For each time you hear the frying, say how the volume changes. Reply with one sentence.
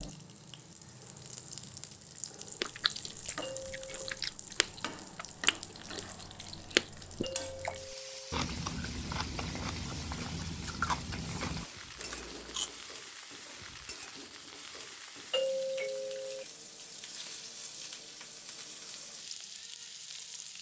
The frying can be heard from 0.0 to 20.5 s, at a steady volume.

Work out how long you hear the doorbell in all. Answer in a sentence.
You can hear the doorbell for 3 seconds altogether.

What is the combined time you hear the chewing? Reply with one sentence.
You can hear the chewing for 10 seconds altogether.